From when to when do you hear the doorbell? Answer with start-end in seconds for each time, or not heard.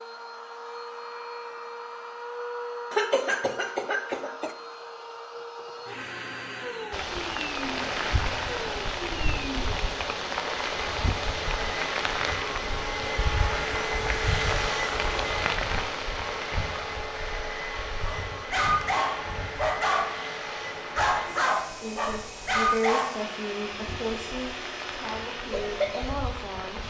not heard.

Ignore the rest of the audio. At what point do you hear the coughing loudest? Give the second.
3 s.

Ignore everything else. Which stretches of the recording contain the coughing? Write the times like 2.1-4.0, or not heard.
2.9-4.5.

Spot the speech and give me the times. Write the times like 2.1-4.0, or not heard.
21.8-26.8.